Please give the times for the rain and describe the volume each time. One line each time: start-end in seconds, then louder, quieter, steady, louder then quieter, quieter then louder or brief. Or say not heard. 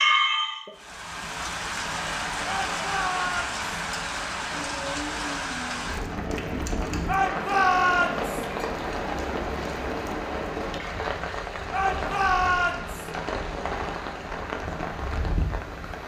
0.0-16.0 steady.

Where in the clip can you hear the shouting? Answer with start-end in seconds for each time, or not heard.
2.5-3.5, 7.0-8.4, 11.7-13.1.